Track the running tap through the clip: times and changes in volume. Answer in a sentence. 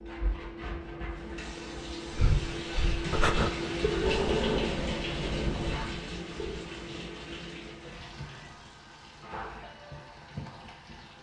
The running tap can be heard from 0.0 to 11.1 s, getting louder then quieter.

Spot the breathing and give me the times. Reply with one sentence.
You can hear the breathing from 2.1 to 6.6 s.